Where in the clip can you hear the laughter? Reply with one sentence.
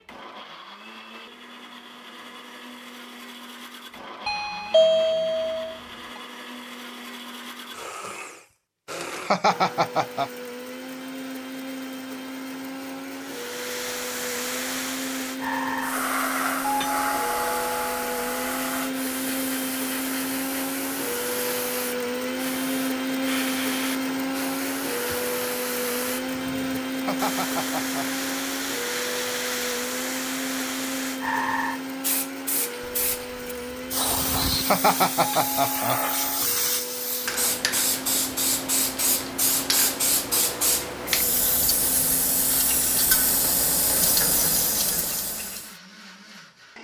The laughter can be heard from 9.2 to 10.3 s, from 27.0 to 28.1 s and from 34.6 to 36.0 s.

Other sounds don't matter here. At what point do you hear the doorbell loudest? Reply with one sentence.
The loudest moment of the doorbell is at 5 seconds.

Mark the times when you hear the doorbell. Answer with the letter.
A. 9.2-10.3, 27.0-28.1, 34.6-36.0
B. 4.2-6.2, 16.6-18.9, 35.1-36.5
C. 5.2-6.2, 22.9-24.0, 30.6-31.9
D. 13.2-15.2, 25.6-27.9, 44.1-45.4
B.